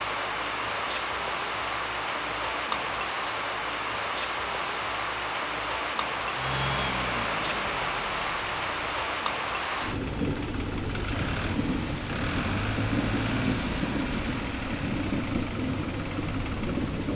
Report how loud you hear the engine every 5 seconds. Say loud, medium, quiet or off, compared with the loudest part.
off, loud, loud, medium.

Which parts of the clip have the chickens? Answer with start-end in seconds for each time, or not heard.
not heard.